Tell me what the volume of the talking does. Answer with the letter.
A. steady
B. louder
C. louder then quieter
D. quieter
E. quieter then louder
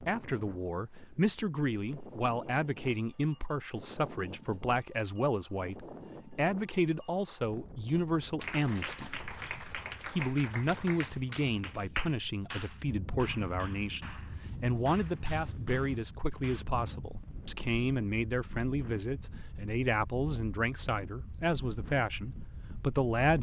A.